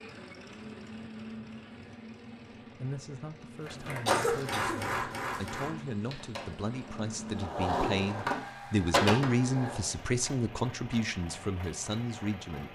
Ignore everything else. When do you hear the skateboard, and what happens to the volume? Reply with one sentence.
You can hear the skateboard from 3.6 to 9.8 s, getting quieter then louder.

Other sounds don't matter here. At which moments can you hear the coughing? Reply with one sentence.
You can hear the coughing from 4.0 to 5.5 s.